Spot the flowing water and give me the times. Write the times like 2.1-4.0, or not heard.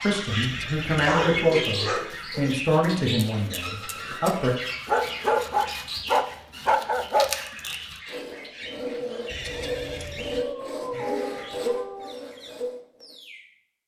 not heard.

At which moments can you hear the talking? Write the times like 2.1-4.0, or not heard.
0.0-4.5.